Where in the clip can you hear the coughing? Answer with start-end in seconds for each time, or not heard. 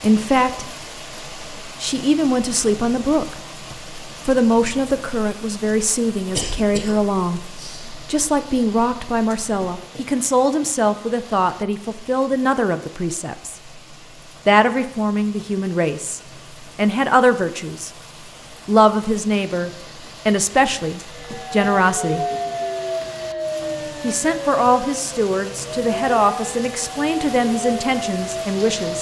6.3-7.8.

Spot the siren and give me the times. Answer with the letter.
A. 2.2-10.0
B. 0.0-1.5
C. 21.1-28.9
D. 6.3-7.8
C.